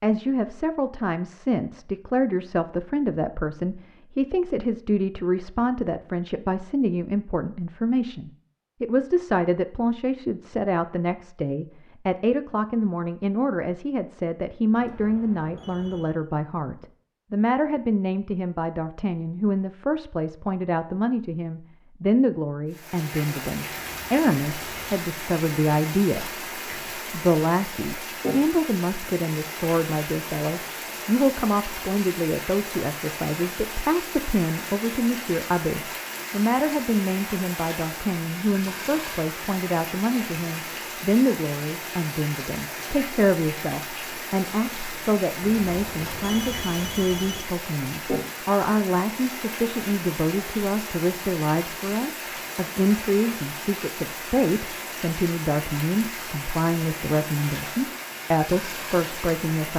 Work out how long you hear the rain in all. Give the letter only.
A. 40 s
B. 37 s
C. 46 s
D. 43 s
B.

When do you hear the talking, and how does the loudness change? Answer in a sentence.
You can hear the talking from 0.0 to 59.7 s, at a steady volume.